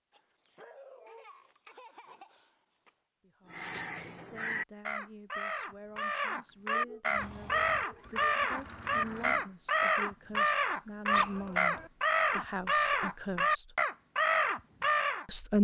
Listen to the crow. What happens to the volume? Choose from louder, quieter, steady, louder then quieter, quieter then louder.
louder.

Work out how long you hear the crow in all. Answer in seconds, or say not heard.
12 s.